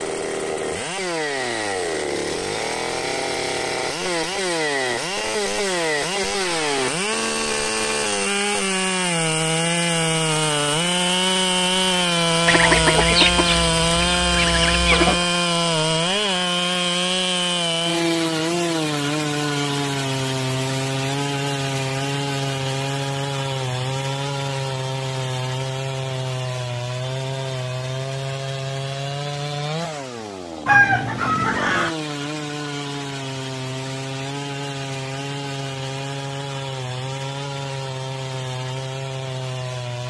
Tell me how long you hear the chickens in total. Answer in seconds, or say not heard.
4 s.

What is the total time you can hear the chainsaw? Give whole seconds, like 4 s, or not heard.
40 s.